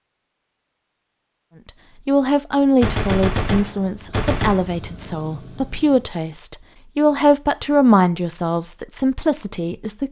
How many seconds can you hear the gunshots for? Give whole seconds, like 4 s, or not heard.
2 s.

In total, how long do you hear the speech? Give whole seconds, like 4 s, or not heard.
8 s.